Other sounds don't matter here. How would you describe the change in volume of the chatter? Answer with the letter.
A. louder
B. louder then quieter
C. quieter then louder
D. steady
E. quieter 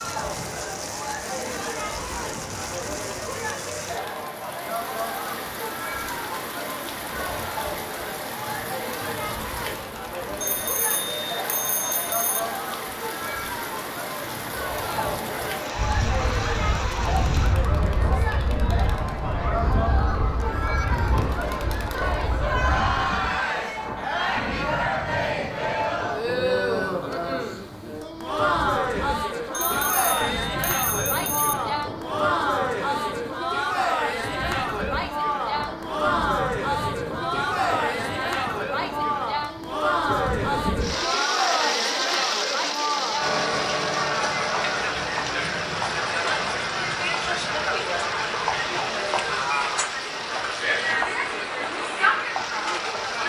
A.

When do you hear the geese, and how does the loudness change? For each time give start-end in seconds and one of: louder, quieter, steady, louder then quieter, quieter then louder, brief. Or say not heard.
15.7-23.1 quieter.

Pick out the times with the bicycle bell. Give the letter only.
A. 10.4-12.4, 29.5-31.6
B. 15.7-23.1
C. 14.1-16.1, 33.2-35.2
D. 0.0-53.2
A.